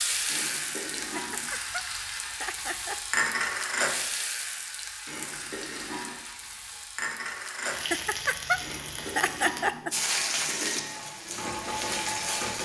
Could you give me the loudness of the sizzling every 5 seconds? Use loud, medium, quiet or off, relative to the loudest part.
loud, medium, loud.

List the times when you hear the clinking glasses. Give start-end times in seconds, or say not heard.
0.2-1.5, 5.0-6.2, 8.6-10.8.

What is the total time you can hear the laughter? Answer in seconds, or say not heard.
4 s.